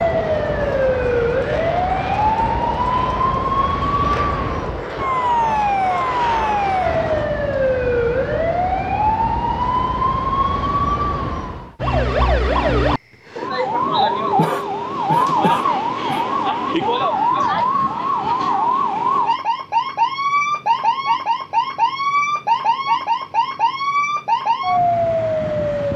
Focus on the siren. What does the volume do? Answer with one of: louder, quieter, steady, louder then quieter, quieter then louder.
steady.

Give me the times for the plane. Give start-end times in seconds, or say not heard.
0.0-7.3.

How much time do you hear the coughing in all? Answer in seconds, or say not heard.
2 s.